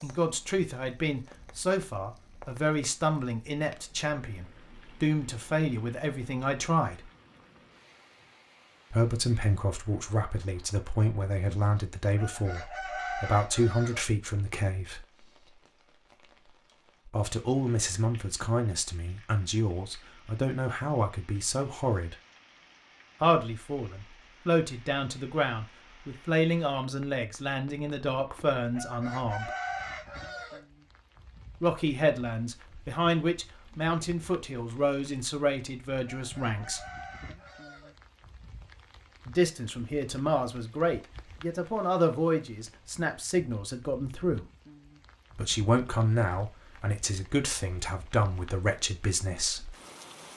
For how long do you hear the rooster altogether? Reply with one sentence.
You can hear the rooster for 6 seconds altogether.